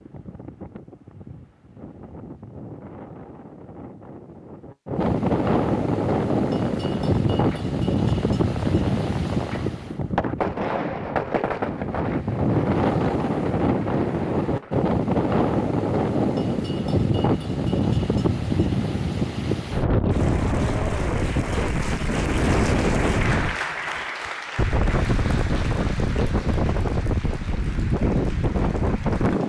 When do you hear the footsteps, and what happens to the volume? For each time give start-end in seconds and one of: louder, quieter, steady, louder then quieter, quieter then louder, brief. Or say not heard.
not heard.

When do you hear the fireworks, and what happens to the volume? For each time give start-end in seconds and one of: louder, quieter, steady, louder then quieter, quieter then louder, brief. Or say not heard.
6.2-14.9 louder then quieter.